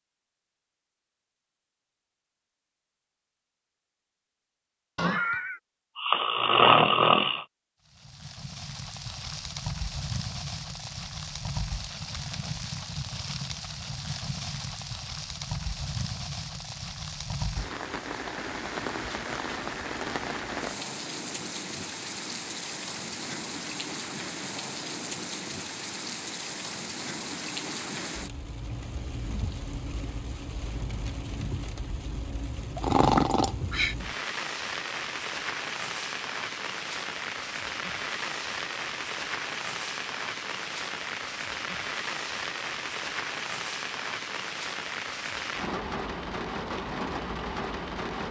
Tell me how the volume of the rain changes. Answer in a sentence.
The loudness of the rain stays about the same.